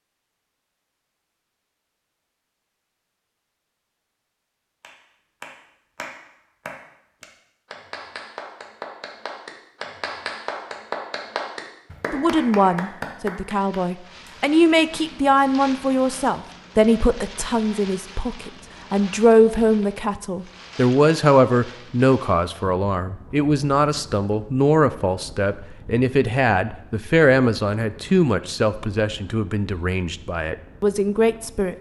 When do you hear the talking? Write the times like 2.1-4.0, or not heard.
12.1-31.7.